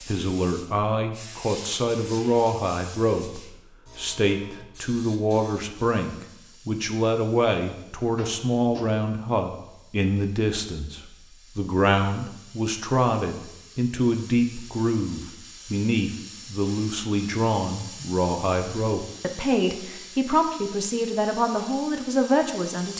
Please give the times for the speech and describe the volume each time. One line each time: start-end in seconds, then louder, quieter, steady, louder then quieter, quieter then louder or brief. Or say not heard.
0.1-22.9 steady.